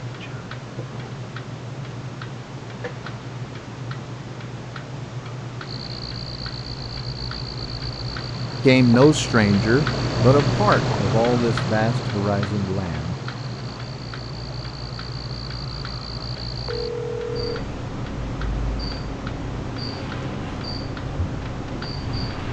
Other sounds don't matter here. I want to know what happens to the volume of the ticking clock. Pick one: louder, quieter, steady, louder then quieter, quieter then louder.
louder then quieter.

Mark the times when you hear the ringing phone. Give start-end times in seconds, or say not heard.
16.6-17.6.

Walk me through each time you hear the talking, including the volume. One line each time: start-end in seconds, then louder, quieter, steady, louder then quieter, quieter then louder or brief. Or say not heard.
8.6-13.2 quieter.